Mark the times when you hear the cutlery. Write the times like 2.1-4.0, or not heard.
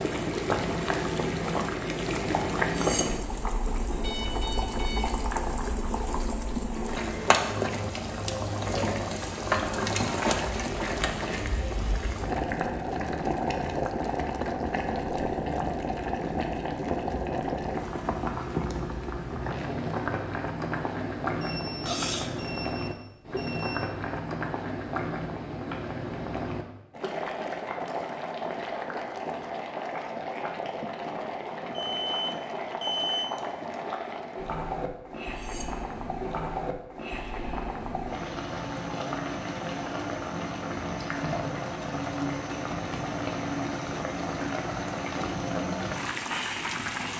2.7-3.2, 21.8-22.4, 35.4-35.9.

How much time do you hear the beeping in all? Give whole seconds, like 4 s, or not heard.
5 s.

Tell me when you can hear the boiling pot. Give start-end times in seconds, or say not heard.
0.0-47.1.